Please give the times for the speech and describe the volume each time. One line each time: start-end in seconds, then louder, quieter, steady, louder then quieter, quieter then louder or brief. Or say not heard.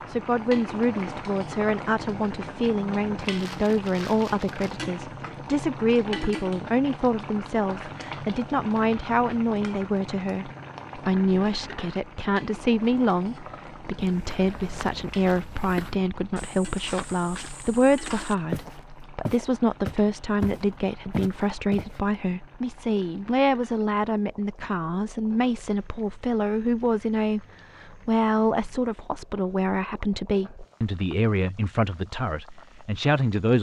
0.1-33.5 steady.